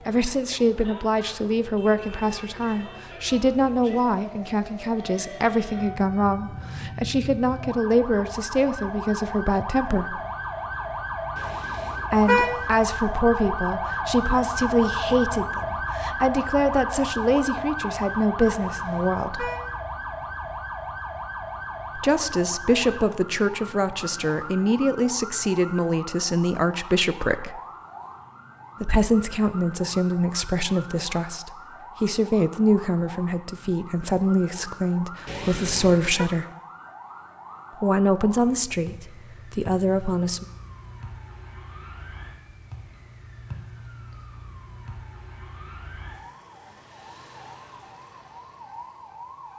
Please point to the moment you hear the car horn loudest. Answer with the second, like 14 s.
12 s.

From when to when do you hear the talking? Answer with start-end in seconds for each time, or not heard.
0.1-10.2, 12.1-19.5, 21.9-27.6, 28.8-36.5, 37.8-40.5.